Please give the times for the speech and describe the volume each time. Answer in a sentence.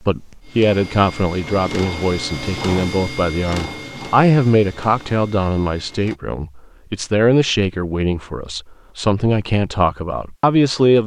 You can hear the speech from 0.1 to 11.0 s, at a steady volume.